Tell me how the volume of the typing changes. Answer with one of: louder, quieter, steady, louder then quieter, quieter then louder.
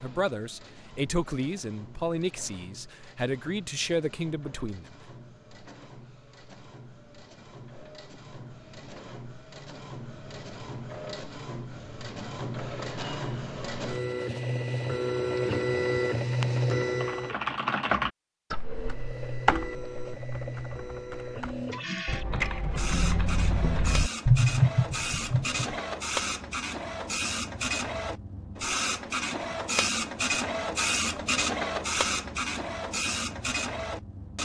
quieter then louder.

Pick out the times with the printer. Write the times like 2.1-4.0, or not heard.
0.0-17.4, 18.6-34.4.